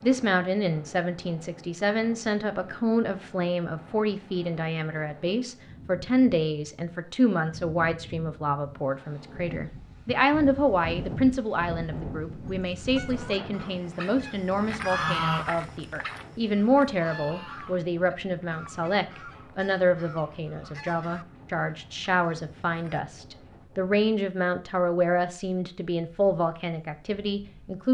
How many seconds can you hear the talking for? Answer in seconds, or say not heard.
28 s.